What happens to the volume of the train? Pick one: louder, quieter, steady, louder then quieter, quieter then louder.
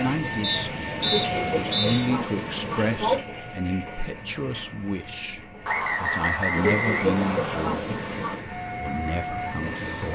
quieter then louder.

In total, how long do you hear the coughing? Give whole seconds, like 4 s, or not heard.
4 s.